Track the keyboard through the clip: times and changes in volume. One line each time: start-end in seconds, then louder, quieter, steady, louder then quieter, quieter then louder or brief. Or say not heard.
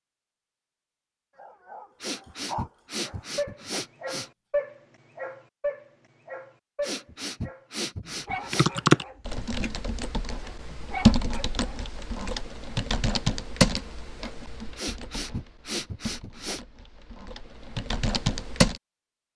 8.5-18.8 quieter then louder.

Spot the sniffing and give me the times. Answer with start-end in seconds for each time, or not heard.
2.0-4.3, 6.8-8.7, 14.8-16.6.